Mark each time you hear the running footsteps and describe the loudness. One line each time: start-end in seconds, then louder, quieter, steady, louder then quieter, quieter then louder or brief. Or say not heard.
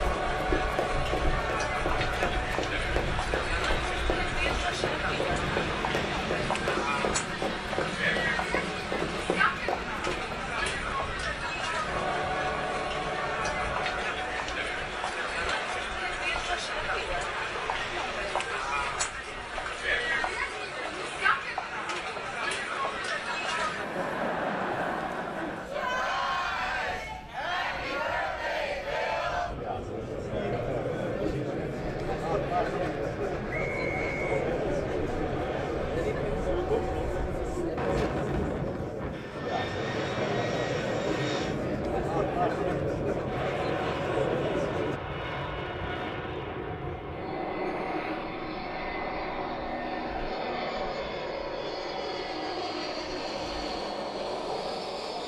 0.0-10.4 steady.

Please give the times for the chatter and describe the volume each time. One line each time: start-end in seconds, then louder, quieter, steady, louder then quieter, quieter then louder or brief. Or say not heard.
0.0-45.0 steady.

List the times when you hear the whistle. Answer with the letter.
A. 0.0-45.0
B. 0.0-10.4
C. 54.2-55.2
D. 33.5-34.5
D.